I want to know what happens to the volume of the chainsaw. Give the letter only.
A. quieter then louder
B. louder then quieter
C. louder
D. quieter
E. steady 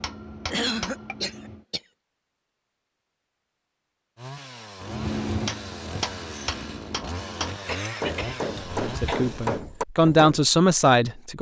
E.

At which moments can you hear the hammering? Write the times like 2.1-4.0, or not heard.
0.0-1.6, 4.8-10.4.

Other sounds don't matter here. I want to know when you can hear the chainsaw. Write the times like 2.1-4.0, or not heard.
4.2-9.7.